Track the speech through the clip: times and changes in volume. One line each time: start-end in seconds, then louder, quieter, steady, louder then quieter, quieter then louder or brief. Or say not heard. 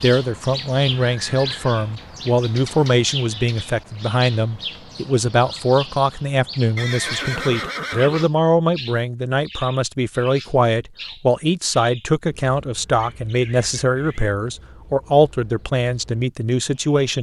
0.0-17.1 steady.